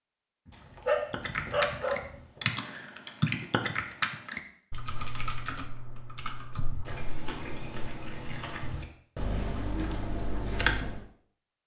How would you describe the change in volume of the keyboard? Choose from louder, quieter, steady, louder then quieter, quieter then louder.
quieter then louder.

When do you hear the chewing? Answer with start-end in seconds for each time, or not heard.
0.5-2.5, 6.8-8.8.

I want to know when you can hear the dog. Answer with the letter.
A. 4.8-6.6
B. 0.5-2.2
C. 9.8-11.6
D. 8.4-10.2
B.